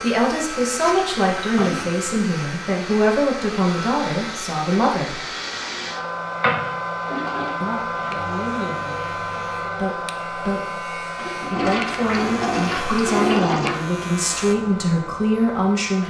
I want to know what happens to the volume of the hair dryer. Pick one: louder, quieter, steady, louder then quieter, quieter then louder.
louder then quieter.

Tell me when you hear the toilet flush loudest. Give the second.
13 s.